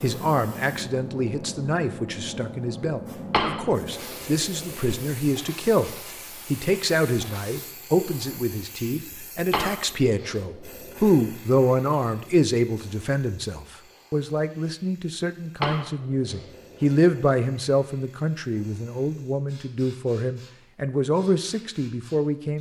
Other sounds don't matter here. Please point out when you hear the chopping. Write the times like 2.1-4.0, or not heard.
not heard.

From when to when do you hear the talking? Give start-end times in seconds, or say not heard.
0.0-22.5.